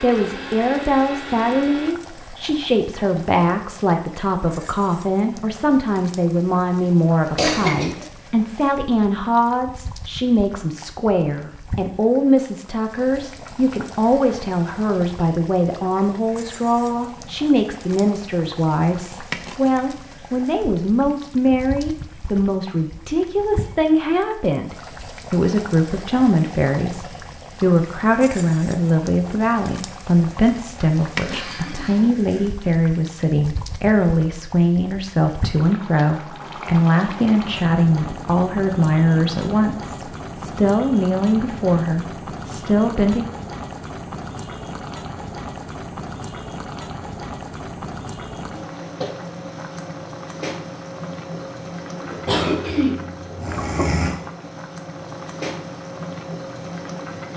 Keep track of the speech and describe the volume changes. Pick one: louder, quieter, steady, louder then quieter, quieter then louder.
steady.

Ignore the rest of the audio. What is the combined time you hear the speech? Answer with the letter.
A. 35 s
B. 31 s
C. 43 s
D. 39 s
C.